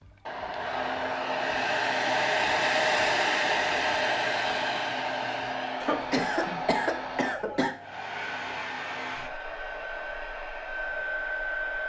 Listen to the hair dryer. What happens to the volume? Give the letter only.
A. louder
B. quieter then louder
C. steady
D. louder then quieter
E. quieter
E.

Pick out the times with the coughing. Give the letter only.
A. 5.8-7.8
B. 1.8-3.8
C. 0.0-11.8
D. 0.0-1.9
A.